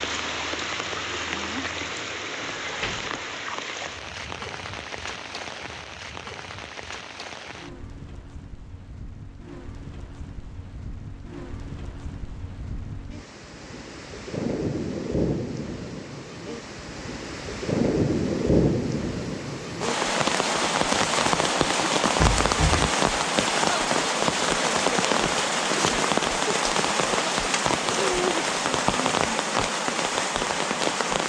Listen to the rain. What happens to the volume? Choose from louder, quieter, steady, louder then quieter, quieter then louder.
quieter then louder.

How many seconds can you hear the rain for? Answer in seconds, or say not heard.
31 s.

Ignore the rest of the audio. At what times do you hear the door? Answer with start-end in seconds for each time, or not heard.
2.4-3.1, 22.1-22.9.